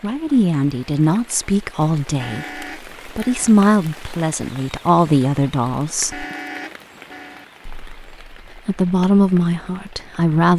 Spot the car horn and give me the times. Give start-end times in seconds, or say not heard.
2.1-3.5, 6.1-7.5.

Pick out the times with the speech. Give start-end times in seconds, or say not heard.
0.0-6.2, 7.7-10.5.